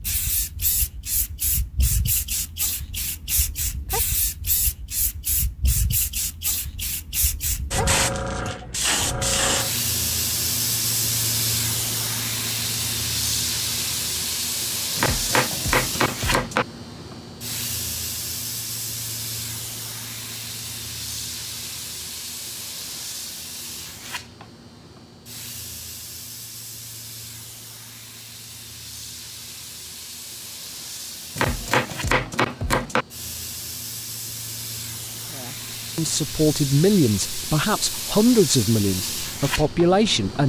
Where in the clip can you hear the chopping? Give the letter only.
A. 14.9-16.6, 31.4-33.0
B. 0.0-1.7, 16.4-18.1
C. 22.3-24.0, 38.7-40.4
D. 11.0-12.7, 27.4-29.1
A.